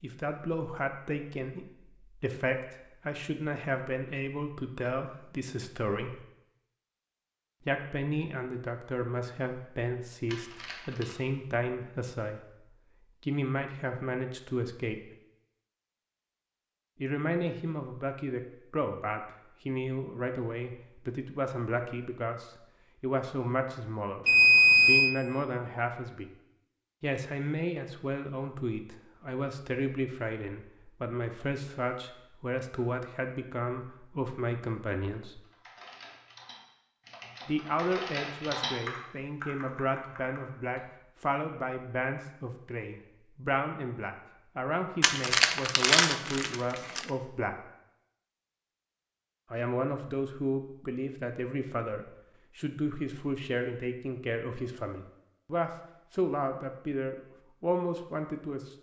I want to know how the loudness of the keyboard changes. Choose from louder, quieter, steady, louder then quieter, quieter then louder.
louder then quieter.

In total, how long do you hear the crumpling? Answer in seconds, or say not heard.
3 s.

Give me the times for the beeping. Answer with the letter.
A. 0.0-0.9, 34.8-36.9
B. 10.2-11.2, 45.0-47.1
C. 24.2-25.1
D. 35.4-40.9
C.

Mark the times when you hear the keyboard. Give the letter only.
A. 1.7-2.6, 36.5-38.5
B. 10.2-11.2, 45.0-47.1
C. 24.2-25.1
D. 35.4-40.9
D.